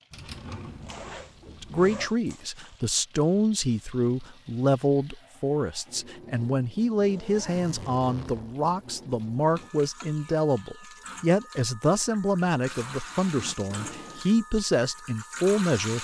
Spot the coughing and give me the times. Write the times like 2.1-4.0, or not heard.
not heard.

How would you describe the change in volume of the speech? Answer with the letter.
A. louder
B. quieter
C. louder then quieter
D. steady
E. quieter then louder
D.